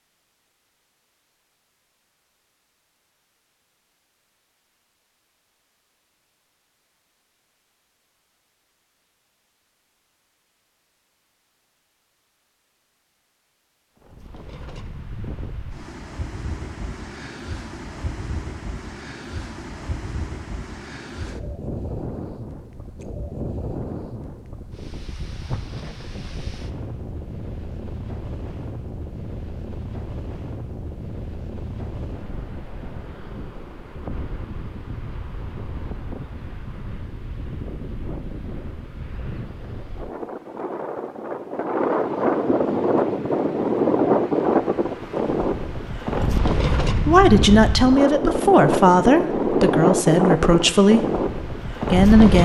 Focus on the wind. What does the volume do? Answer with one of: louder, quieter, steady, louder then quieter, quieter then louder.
louder.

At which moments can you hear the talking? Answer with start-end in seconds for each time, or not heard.
47.0-51.0, 51.9-52.4.